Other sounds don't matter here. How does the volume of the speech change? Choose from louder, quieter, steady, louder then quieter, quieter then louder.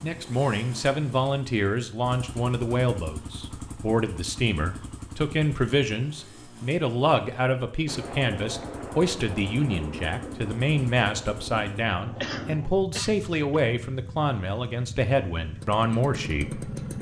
steady.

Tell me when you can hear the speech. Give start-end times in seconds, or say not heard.
0.0-16.7.